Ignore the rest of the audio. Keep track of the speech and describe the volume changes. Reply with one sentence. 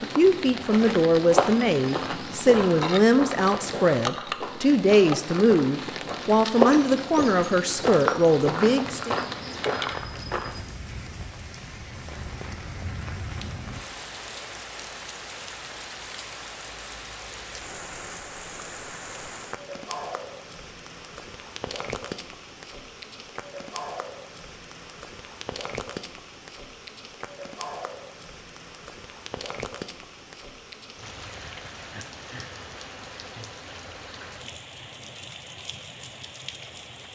The volume of the speech stays about the same.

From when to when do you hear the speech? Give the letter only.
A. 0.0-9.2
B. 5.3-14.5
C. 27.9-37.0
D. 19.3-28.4
A.